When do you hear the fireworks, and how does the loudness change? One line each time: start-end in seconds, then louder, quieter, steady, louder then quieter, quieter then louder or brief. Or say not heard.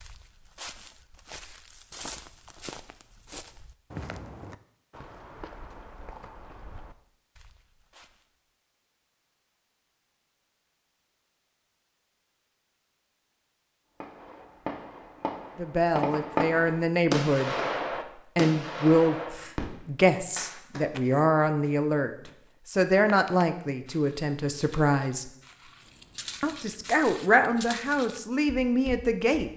14.0-20.9 louder then quieter.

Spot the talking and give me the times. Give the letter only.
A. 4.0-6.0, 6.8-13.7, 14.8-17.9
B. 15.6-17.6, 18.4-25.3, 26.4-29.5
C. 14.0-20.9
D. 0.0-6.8
B.